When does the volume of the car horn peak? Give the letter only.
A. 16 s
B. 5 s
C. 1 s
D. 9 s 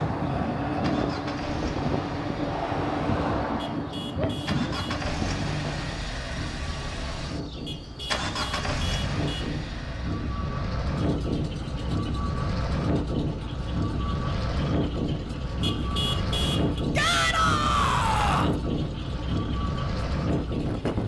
A.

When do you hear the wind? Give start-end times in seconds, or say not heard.
0.0-21.0.